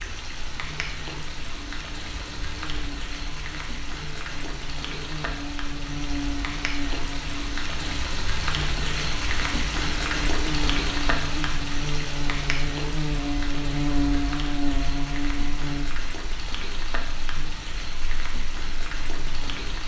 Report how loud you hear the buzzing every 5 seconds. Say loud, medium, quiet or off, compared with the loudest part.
quiet, medium, loud, medium.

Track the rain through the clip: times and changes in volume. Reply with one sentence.
You can hear the rain from 0.0 to 19.8 s, getting louder then quieter.